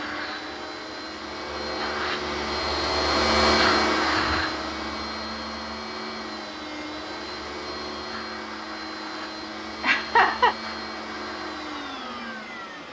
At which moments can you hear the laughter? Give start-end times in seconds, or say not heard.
9.8-10.6.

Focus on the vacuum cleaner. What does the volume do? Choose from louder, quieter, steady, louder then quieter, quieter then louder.
louder then quieter.